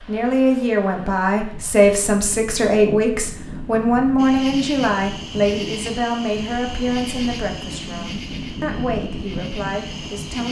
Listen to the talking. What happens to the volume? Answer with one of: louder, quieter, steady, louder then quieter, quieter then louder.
quieter.